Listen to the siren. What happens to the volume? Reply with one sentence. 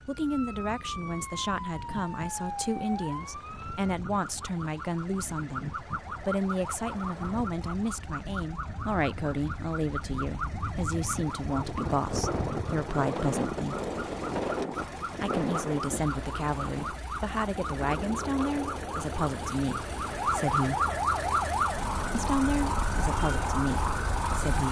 The loudness of the siren goes up.